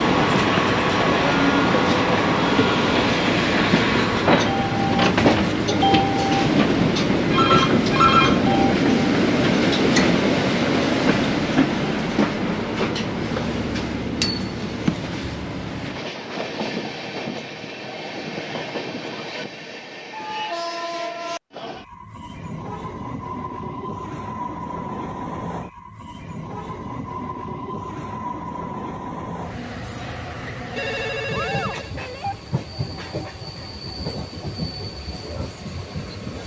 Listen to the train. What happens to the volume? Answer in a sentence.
The loudness of the train goes down.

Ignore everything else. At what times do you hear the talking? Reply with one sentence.
The talking can't be heard in this clip.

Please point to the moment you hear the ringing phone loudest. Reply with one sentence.
The volume of the ringing phone peaks at 8 seconds.